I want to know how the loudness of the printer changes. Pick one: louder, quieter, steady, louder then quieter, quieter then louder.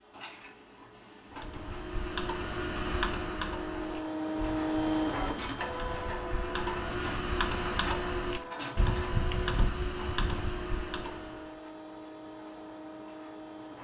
louder then quieter.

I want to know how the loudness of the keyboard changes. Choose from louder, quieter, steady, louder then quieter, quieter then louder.
quieter then louder.